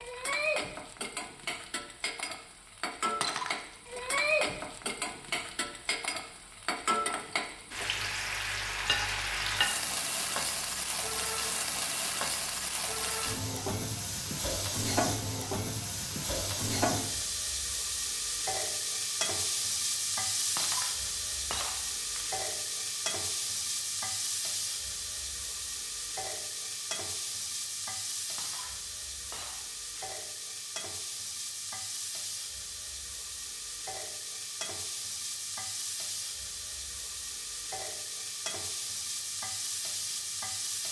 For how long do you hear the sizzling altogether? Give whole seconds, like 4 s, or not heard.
41 s.